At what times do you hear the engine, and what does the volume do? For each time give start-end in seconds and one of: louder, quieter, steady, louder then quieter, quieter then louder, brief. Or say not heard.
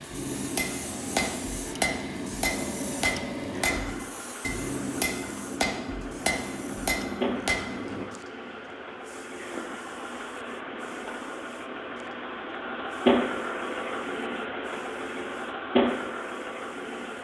0.0-17.1 louder.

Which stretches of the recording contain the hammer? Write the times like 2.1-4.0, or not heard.
0.1-8.1.